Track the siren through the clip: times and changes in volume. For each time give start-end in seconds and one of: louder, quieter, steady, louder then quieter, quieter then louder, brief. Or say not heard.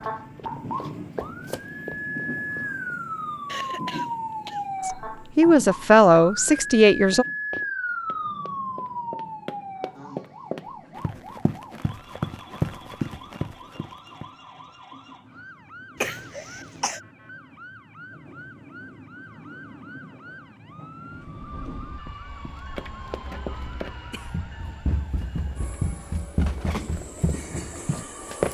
0.0-28.4 quieter.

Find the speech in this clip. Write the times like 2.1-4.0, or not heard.
4.8-7.2.